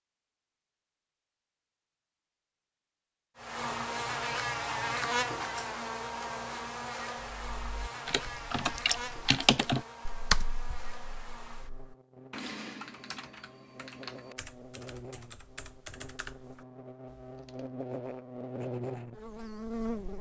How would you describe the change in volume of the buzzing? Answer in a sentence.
The loudness of the buzzing goes down, then up.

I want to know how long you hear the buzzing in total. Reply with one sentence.
The buzzing can be heard for 17 seconds in total.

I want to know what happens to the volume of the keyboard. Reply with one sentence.
The volume of the keyboard goes down.